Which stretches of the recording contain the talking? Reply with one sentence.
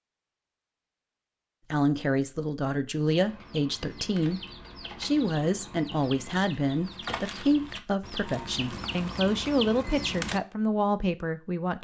You can hear the talking from 1.7 to 11.7 s.